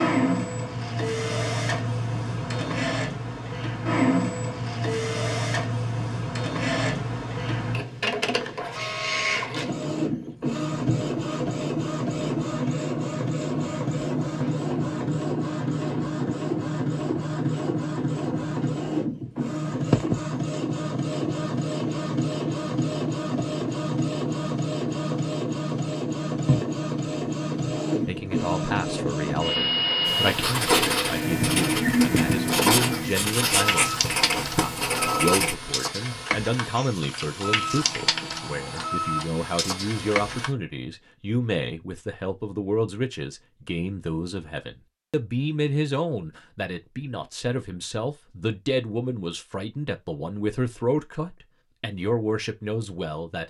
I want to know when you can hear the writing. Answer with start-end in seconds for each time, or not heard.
30.1-35.5.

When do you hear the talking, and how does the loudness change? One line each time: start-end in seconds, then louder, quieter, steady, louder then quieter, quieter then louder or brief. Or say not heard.
28.1-53.4 steady.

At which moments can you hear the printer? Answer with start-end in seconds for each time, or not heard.
0.0-40.5.